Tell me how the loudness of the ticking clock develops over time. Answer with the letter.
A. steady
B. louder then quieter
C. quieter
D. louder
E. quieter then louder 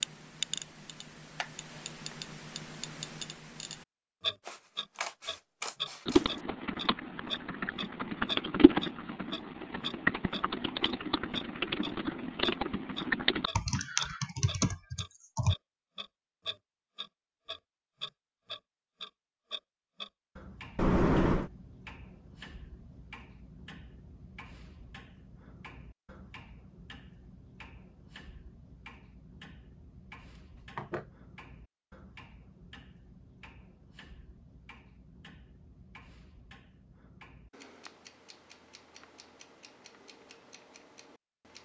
C.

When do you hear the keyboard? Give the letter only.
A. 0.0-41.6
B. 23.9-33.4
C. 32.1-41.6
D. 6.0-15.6
D.